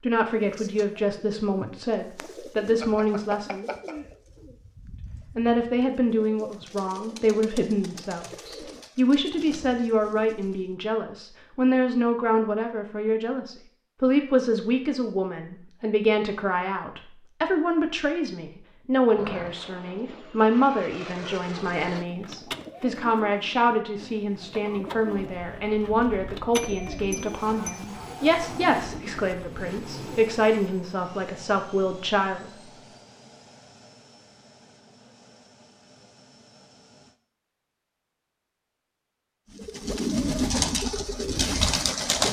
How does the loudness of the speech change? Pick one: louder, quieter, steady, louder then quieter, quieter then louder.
steady.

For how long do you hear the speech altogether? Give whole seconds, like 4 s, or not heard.
31 s.